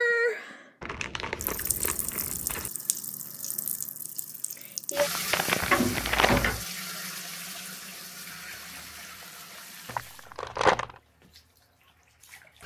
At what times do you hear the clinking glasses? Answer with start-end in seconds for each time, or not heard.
not heard.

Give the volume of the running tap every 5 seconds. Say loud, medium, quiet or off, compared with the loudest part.
loud, loud, quiet.